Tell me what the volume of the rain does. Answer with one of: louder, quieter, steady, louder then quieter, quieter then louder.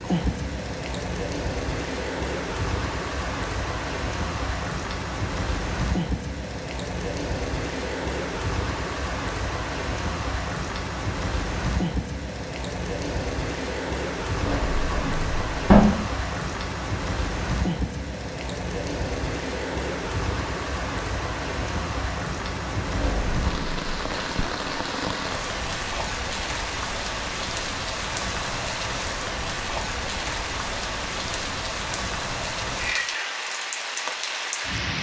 steady.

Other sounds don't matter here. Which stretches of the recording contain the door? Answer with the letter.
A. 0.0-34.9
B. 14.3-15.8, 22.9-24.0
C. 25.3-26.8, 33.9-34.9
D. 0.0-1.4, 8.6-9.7
B.